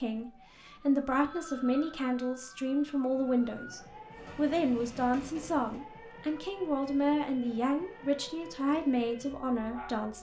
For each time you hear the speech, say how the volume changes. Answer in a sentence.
The speech can be heard from 0.0 to 10.1 s, at a steady volume.